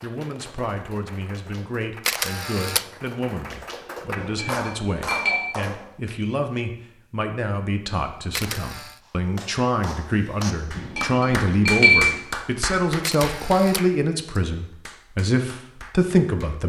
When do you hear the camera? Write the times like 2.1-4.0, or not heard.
2.0-2.9, 8.3-9.0, 13.0-13.8.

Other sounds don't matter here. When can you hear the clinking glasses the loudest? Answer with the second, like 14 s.
12 s.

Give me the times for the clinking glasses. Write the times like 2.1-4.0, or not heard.
4.2-5.4, 10.8-12.2.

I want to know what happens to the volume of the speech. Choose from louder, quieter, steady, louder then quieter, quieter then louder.
louder.